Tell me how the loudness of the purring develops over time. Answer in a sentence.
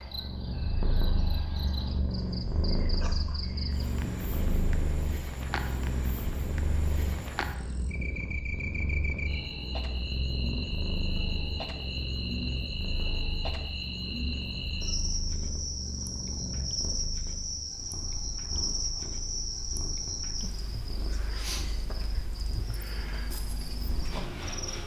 The loudness of the purring goes down.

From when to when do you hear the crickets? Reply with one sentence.
You can hear the crickets from 0.0 to 24.8 s.